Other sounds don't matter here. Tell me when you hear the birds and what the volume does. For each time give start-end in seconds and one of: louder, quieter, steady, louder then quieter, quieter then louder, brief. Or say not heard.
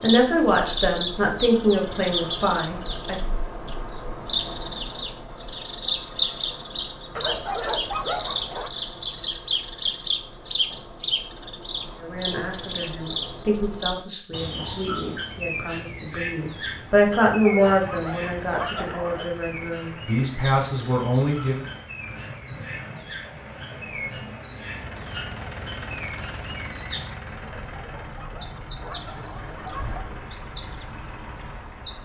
0.0-32.0 quieter then louder.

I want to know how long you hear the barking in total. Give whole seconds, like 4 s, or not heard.
6 s.